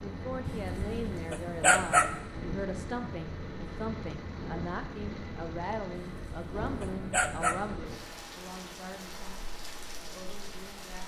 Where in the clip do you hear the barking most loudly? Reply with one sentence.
The loudest moment of the barking is at 2 seconds.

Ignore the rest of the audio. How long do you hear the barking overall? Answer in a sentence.
The barking can be heard for 3 seconds in total.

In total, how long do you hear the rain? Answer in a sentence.
The rain can be heard for 11 seconds in total.